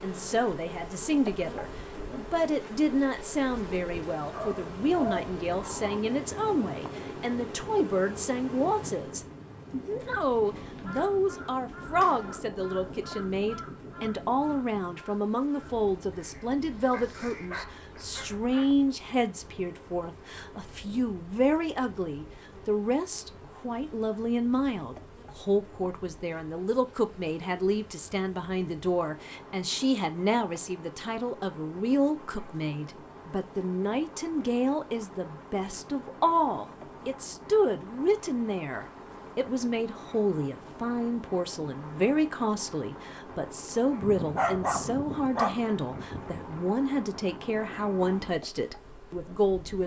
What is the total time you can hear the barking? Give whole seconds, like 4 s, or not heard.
6 s.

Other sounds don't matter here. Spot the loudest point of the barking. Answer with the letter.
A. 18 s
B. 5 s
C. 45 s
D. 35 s
C.